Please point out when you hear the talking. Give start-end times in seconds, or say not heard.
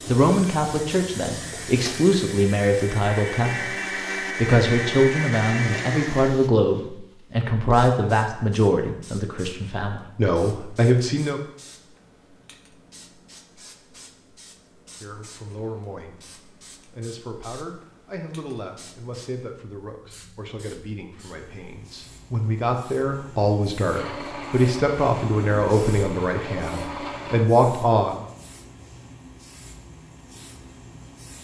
0.1-11.4, 15.0-28.2.